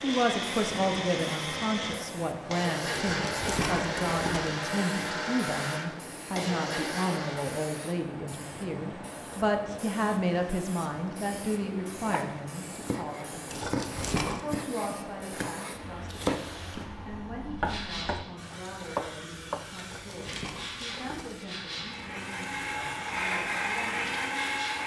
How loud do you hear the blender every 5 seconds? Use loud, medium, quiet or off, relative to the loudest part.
loud, loud, off, off, loud.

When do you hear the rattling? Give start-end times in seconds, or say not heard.
3.0-4.5, 13.5-14.4, 19.8-21.4.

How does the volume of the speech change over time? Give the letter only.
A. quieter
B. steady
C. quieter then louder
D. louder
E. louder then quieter
A.